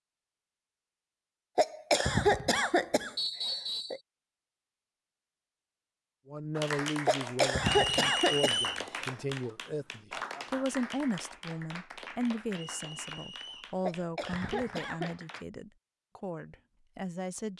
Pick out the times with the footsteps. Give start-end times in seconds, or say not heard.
not heard.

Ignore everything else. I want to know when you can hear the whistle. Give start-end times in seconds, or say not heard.
3.1-4.0, 7.6-8.8, 12.7-13.8.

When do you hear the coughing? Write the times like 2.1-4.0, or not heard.
1.6-4.0, 7.0-8.7, 13.8-15.2.